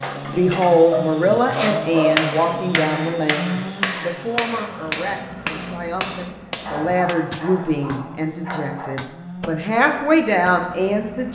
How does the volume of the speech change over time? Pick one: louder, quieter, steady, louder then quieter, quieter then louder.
quieter then louder.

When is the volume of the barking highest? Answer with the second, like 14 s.
2 s.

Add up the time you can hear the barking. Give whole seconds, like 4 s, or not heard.
4 s.